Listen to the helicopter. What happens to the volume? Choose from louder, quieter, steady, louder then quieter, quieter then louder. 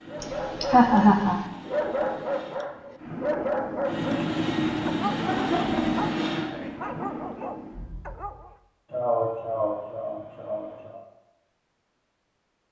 louder then quieter.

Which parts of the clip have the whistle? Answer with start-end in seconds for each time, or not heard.
not heard.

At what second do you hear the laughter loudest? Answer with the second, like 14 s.
1 s.